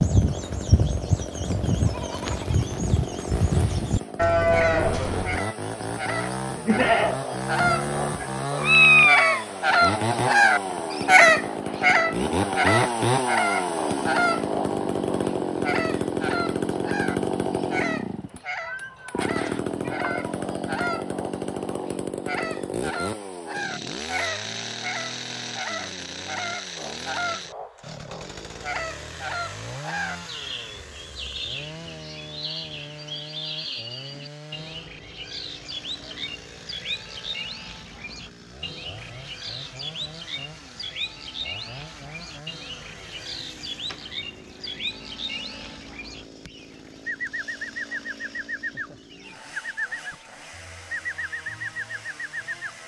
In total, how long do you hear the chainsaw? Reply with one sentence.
You can hear the chainsaw for 53 seconds altogether.